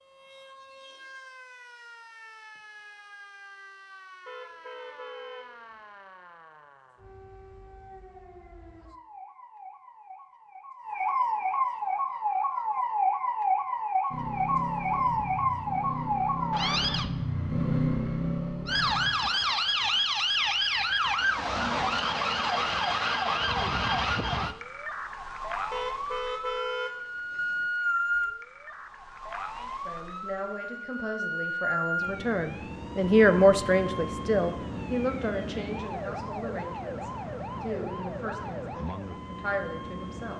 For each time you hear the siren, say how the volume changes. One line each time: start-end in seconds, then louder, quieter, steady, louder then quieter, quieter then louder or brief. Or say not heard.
0.0-17.1 louder
18.6-40.3 quieter.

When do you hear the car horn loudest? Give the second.
27 s.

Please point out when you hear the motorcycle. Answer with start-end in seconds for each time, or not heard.
14.1-19.1.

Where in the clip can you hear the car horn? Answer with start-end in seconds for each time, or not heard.
4.2-5.5, 25.7-27.7.